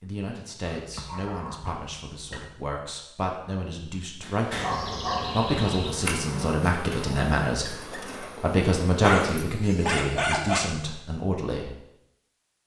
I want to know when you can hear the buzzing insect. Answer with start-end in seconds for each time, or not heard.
4.5-9.3.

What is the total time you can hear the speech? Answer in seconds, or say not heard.
12 s.